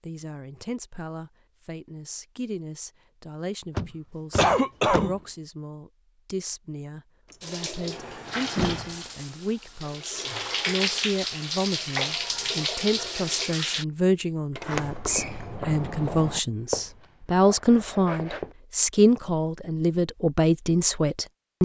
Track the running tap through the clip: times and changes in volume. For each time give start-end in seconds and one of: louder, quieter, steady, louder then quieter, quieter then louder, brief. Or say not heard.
7.4-13.8 quieter then louder.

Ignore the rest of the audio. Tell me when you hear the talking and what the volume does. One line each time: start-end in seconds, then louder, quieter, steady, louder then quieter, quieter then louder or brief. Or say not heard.
0.0-21.5 louder.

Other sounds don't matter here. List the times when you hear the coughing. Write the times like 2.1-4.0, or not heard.
4.3-5.2.